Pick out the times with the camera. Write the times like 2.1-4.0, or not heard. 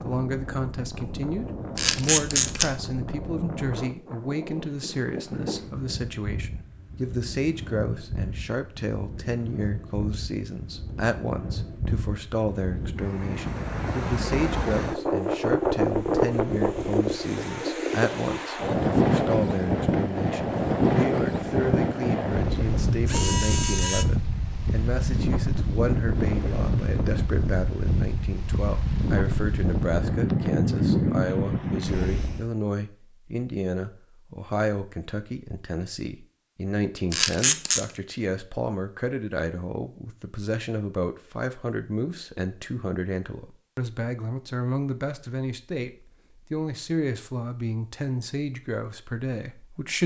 1.8-2.7, 23.1-24.1, 37.1-37.8.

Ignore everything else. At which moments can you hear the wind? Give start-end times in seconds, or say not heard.
0.0-32.5.